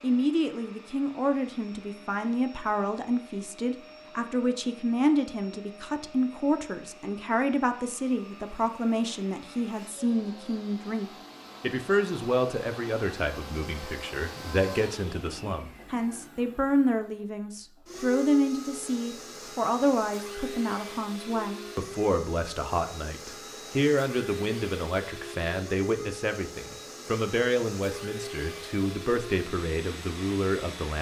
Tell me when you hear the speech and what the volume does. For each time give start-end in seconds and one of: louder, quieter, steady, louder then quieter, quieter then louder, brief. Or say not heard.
0.0-30.9 steady.